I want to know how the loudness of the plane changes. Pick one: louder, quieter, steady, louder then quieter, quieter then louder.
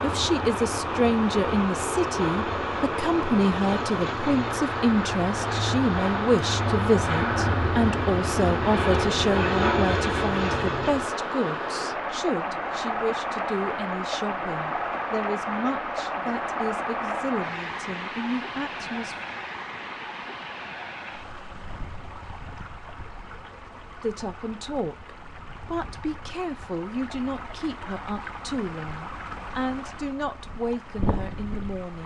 louder.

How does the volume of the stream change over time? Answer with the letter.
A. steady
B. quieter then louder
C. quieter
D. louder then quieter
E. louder
C.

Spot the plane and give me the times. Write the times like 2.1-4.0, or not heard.
0.0-11.2.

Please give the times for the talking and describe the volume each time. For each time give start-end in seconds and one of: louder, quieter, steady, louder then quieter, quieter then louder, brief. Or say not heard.
0.0-19.1 quieter
24.0-32.0 steady.